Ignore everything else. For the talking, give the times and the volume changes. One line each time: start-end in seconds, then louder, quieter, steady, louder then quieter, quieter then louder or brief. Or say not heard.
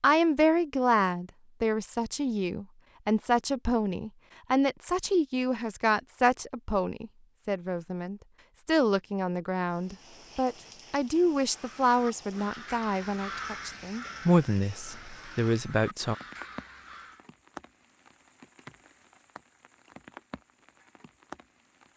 0.0-16.1 steady.